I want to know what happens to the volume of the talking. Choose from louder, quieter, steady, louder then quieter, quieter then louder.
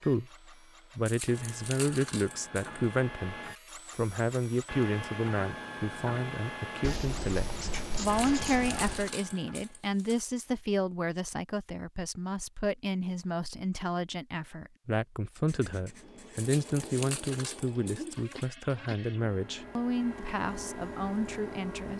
steady.